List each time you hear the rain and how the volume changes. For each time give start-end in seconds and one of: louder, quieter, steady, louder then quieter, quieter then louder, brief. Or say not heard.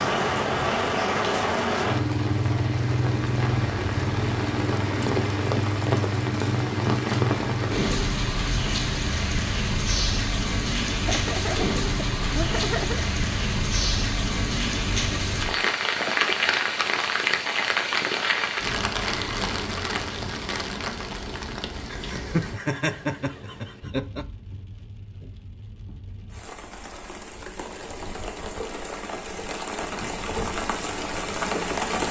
0.0-32.0 quieter.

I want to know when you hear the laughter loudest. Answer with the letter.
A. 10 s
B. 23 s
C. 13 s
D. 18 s
B.